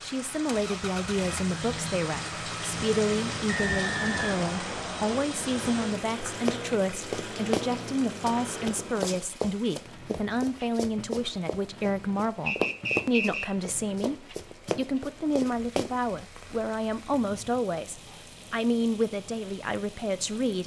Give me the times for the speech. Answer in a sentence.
The speech can be heard from 0.0 to 20.6 s.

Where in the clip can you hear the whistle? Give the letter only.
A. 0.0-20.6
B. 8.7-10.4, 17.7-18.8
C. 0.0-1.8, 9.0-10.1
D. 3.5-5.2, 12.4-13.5
D.